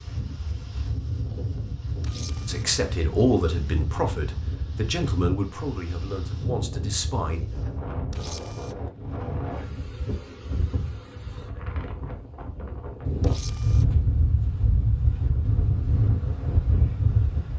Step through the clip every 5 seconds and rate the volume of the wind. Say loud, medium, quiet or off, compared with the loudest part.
medium, medium, loud, loud.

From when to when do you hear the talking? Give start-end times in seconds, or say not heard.
2.5-7.4.